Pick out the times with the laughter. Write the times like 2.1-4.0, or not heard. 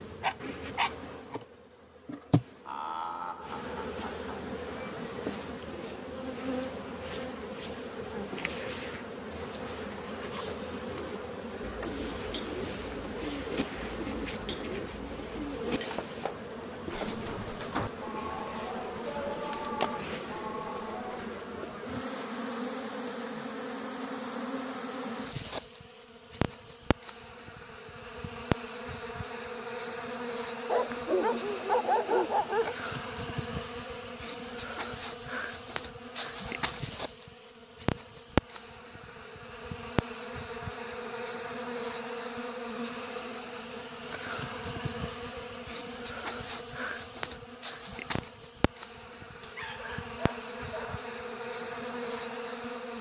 2.6-4.5.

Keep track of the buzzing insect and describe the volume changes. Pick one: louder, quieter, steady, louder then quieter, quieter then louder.
steady.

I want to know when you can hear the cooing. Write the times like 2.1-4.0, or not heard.
10.9-21.4.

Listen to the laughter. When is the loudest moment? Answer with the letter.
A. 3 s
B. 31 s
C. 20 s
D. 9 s
A.